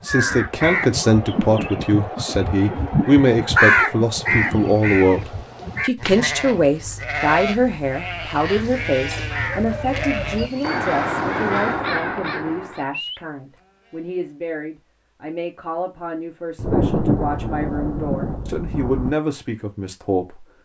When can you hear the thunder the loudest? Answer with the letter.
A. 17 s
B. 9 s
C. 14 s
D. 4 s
A.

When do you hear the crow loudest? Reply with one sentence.
The volume of the crow peaks at 4 seconds.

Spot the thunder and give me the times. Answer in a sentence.
You can hear the thunder from 16.6 to 19.1 s.